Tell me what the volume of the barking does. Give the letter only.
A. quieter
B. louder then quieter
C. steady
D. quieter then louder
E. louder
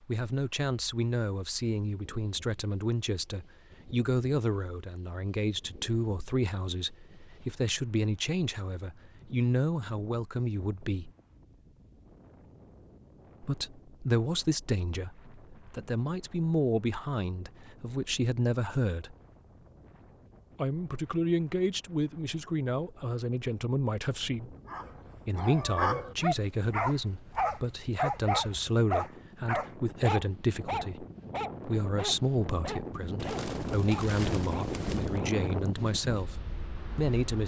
A.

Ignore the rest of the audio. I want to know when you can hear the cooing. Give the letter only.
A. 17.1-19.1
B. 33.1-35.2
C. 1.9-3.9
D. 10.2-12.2
B.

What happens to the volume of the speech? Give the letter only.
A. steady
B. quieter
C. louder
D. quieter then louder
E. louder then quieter
A.